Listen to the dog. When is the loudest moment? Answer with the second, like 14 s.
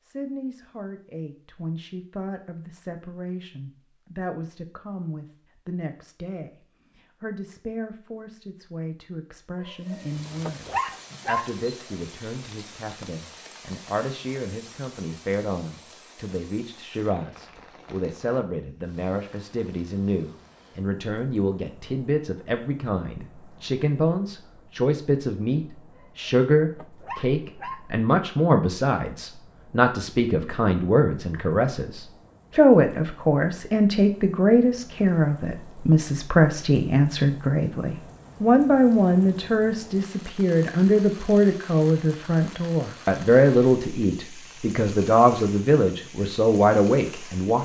11 s.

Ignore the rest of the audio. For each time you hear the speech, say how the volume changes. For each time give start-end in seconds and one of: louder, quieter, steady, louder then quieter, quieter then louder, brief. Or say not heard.
0.0-47.6 louder.